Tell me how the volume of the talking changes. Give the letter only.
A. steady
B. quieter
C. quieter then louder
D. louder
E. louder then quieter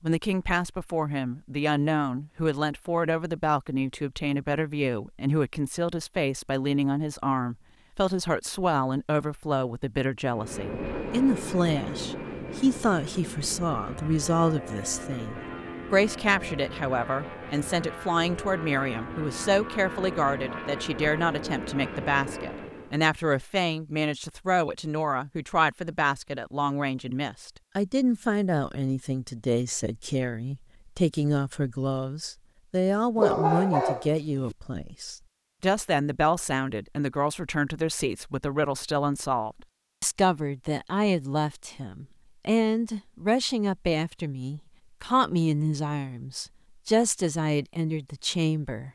A.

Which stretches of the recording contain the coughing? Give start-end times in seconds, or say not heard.
not heard.